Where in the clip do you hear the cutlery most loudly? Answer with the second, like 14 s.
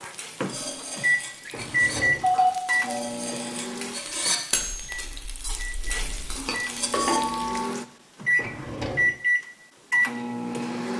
4 s.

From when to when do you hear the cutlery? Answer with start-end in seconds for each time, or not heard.
0.5-7.2.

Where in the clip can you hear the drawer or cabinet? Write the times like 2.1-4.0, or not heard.
1.4-2.3, 8.3-9.2.